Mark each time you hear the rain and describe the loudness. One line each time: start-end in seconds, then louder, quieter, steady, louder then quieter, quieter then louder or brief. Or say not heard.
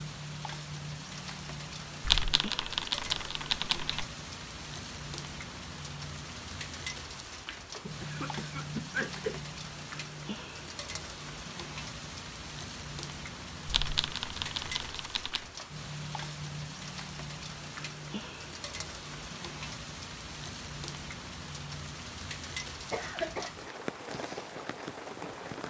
0.0-25.6 steady.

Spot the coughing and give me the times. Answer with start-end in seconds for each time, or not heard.
7.8-9.4, 22.9-23.6.